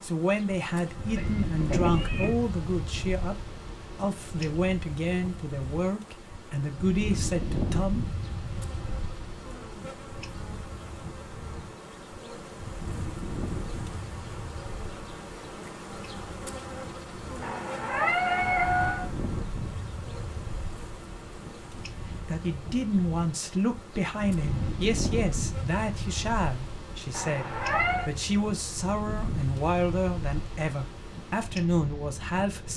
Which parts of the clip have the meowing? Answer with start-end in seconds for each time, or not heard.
1.1-2.4, 17.4-19.1, 27.1-28.1.